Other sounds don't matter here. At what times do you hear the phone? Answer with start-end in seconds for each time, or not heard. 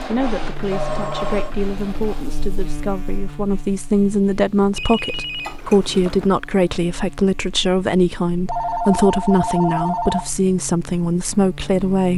0.7-1.6, 4.8-6.3, 8.4-10.3.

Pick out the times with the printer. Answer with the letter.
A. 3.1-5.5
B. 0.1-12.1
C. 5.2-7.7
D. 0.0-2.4
D.